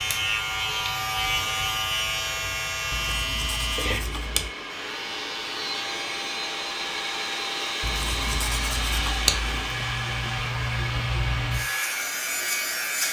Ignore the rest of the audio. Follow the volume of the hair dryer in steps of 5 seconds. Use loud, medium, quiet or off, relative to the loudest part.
medium, loud, loud.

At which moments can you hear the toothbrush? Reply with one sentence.
The toothbrush can be heard from 2.9 to 4.5 s and from 7.8 to 9.8 s.